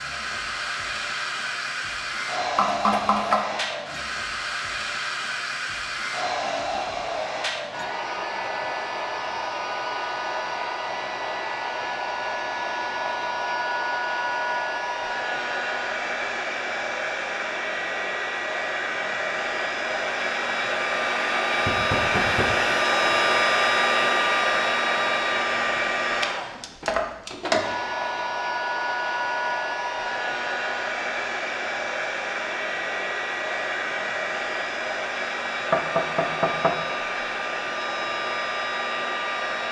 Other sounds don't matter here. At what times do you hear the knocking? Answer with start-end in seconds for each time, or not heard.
2.5-3.4, 21.6-22.7, 35.7-36.8.